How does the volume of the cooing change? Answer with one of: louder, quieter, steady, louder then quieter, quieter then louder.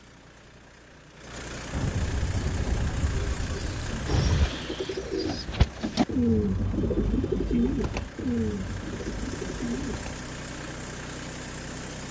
louder then quieter.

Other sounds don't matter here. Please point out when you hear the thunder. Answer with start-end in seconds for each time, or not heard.
1.7-4.5.